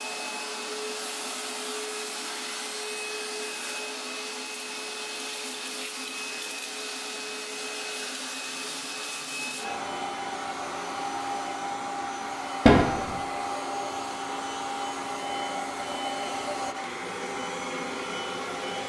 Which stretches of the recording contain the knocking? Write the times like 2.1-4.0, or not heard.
12.7-13.1.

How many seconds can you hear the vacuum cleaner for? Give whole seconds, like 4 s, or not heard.
19 s.